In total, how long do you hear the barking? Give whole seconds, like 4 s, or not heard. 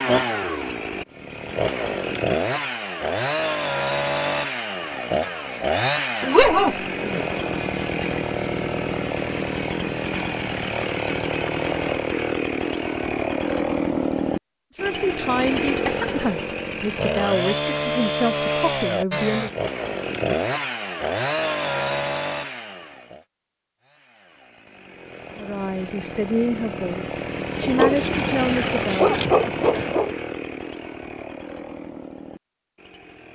4 s.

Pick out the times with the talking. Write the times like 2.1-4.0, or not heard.
14.8-19.5, 25.4-29.2.